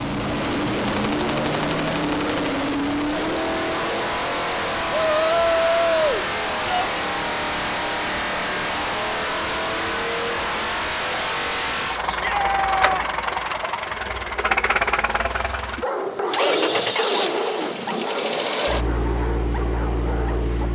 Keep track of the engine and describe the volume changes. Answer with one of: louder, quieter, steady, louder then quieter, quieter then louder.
steady.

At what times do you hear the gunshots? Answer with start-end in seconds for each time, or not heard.
0.8-2.6.